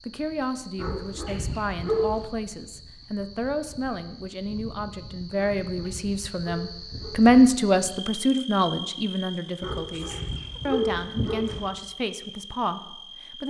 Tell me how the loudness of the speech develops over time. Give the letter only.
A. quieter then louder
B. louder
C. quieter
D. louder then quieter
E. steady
D.